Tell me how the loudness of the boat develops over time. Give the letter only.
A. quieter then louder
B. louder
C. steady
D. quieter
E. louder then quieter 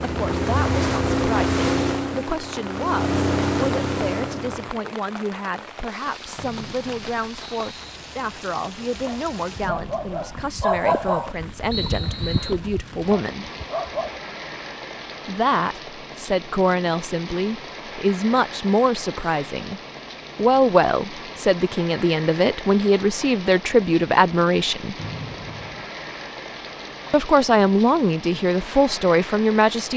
A.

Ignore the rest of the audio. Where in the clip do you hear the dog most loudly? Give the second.
11 s.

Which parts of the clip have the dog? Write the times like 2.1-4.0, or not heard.
8.9-14.2.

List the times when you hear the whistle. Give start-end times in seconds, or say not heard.
6.3-8.0, 11.7-12.6, 24.9-25.9.